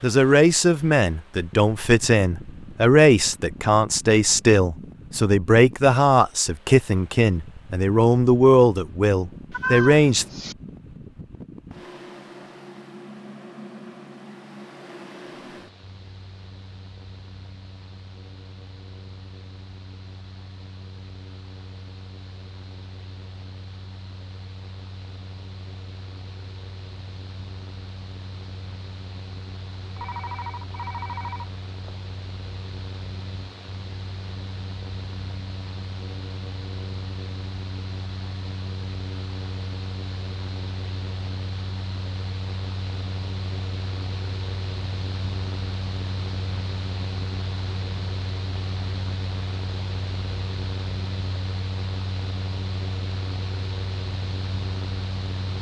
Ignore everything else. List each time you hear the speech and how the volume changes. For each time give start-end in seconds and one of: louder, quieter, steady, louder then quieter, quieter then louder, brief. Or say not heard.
0.0-10.2 steady.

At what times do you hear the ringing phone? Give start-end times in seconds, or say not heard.
29.9-31.9.